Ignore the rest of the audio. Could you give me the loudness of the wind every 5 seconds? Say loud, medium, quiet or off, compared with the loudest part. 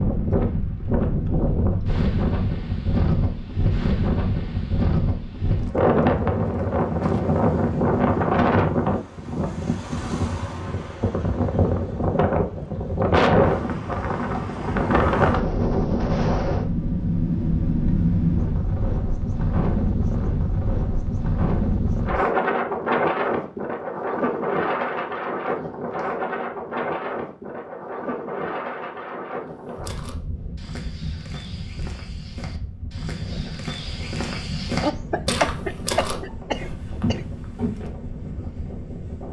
loud, loud, loud, loud, loud, medium, quiet, quiet.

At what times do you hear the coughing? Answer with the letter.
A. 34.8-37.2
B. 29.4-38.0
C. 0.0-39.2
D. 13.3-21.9
A.